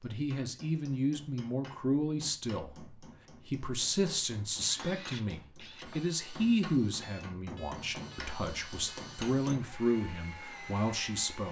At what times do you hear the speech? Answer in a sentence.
The speech can be heard from 0.0 to 11.4 s.